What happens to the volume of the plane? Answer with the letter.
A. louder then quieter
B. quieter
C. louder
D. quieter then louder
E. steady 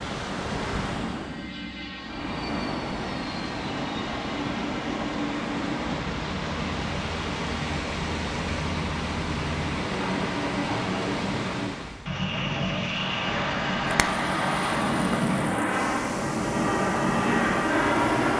C.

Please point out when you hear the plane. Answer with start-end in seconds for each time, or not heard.
0.0-18.3.